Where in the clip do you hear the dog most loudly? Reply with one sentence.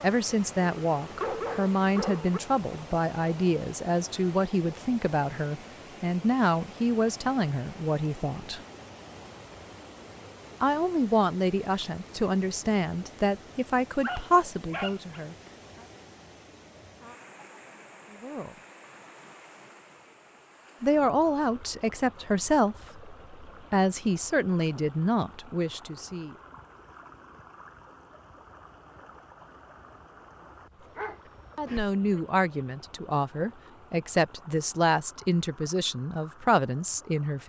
The loudest moment of the dog is at 1 second.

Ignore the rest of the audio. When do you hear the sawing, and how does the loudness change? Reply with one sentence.
The sawing can't be heard in this clip.